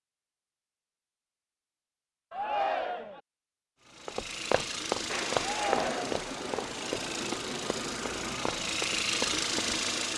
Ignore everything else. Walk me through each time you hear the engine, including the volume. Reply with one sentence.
The engine can be heard from 3.8 to 10.1 s, getting louder.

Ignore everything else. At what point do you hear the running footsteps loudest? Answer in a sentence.
The volume of the running footsteps peaks at 5 seconds.